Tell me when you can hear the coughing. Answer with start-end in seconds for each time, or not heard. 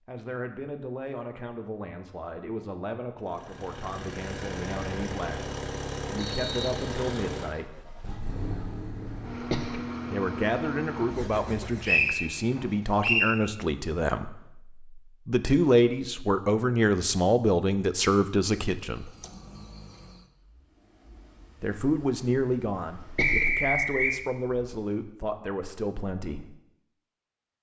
9.1-9.8, 22.8-23.5.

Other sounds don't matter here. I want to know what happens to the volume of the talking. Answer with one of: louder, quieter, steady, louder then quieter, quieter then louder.
louder then quieter.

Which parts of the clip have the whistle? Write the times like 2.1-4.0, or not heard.
6.2-7.1, 11.8-13.3, 23.1-24.2.